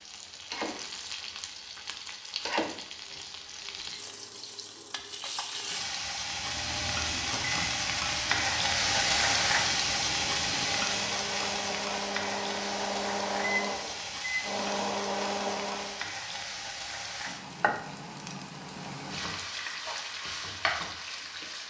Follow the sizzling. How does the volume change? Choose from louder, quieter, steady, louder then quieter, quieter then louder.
louder then quieter.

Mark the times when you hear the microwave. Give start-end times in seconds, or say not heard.
6.3-16.1.